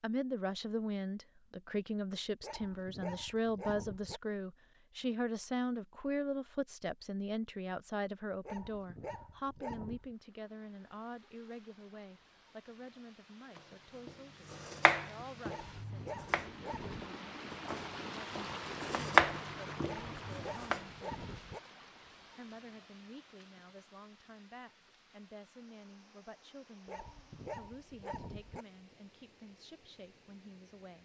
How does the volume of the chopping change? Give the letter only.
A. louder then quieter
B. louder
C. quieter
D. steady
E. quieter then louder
E.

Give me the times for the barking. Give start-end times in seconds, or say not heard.
2.4-4.2, 8.4-10.2, 15.4-17.1, 19.9-21.6, 26.9-28.6.